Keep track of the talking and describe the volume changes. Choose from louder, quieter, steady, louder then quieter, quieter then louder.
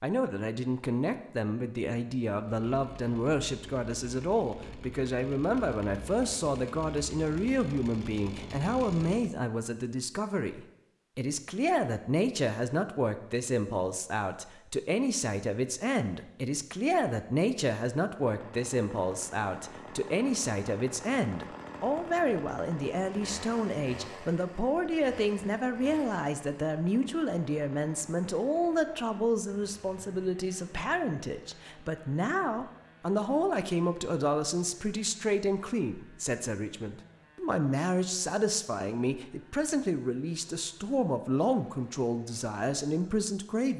steady.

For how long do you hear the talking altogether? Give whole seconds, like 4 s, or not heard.
44 s.